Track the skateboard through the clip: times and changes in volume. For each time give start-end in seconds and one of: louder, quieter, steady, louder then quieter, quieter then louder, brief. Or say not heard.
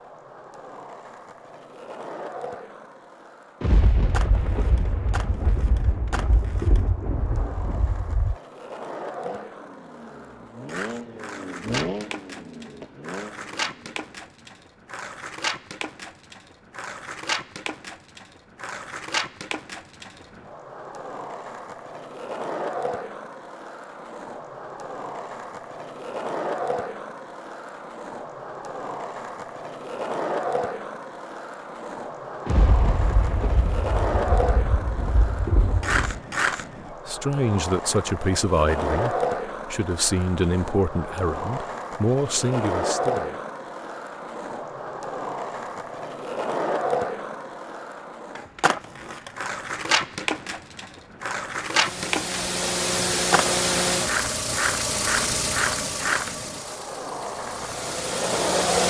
0.0-58.8 louder.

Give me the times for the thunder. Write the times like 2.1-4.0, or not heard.
3.6-8.3, 32.5-36.2.